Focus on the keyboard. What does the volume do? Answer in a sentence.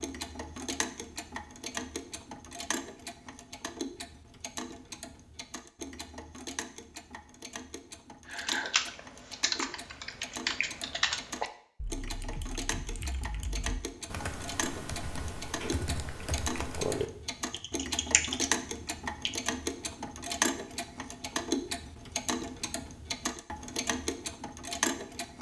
The volume of the keyboard goes down, then up.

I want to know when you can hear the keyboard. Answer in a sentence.
The keyboard can be heard from 8.2 to 19.5 s.